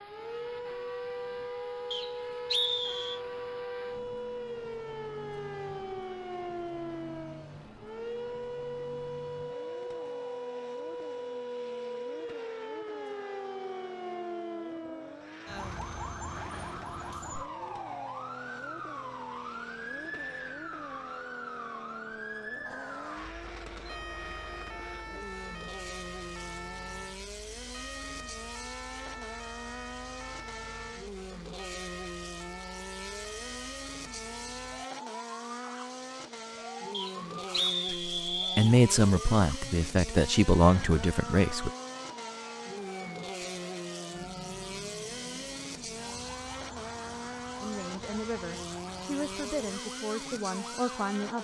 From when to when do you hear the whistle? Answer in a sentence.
You can hear the whistle from 1.9 to 3.2 s and from 36.9 to 38.8 s.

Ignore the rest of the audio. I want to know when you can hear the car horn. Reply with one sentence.
You can't hear the car horn here.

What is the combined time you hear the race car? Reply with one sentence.
The race car can be heard for 51 seconds in total.